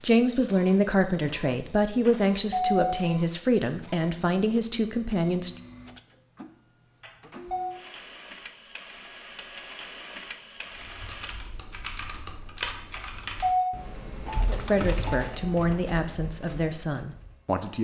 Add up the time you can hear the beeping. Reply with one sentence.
The beeping can be heard for 2 seconds in total.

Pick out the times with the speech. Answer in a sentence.
You can hear the speech from 0.0 to 5.5 s and from 14.4 to 17.7 s.